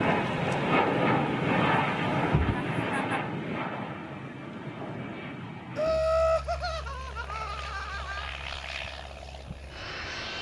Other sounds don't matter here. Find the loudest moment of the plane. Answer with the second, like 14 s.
1 s.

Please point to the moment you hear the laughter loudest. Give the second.
6 s.